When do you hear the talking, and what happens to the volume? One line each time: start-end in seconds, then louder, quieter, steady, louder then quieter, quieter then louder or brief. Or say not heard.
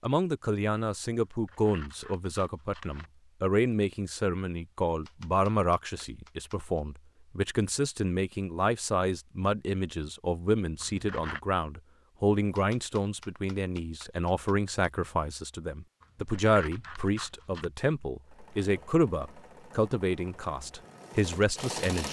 0.0-22.0 steady.